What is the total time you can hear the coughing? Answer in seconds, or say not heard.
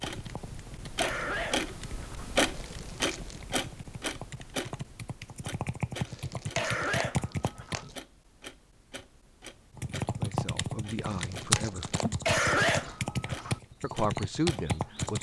4 s.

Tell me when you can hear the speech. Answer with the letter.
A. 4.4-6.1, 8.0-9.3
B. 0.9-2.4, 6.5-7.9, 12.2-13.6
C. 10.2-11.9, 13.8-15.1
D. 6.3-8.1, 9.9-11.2
C.